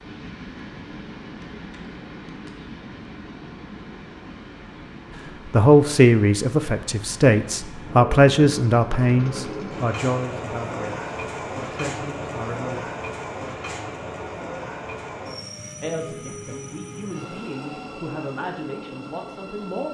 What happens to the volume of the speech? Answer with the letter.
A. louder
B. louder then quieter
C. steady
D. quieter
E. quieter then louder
D.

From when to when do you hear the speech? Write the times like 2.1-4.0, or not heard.
5.5-12.8, 15.8-19.8.